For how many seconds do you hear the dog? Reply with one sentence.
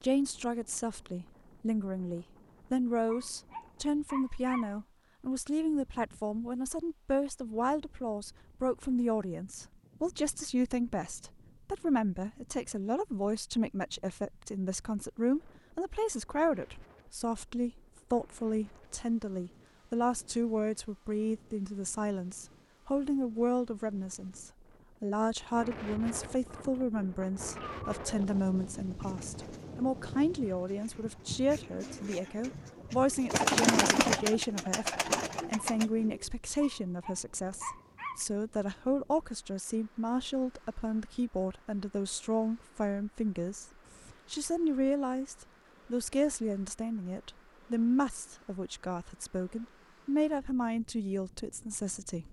The dog can be heard for 3 seconds in total.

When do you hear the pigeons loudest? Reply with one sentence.
The volume of the pigeons peaks at 34 seconds.